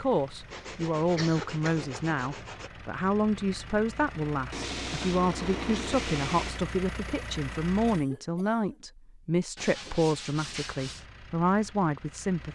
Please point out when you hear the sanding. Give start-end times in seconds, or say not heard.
0.5-2.7, 4.5-6.6, 9.6-11.1.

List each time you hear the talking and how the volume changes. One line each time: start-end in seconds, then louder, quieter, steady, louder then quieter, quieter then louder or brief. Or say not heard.
0.0-12.5 steady.